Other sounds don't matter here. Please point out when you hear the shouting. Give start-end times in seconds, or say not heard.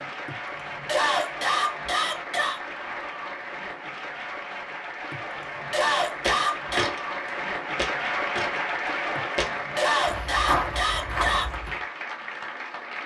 not heard.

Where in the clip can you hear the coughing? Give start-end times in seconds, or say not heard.
0.2-2.6, 5.1-6.9, 9.2-11.5.